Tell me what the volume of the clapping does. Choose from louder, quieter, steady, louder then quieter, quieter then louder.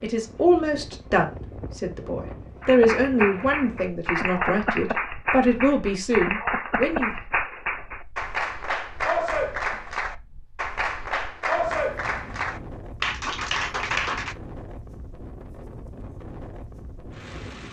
steady.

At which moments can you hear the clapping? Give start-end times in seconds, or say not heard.
2.6-14.3.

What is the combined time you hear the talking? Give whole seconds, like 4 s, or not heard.
7 s.